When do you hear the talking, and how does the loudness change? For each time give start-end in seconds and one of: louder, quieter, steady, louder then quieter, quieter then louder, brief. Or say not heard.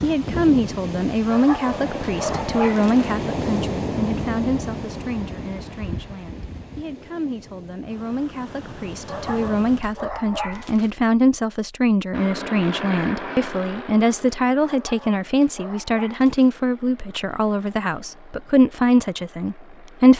0.0-20.1 quieter then louder.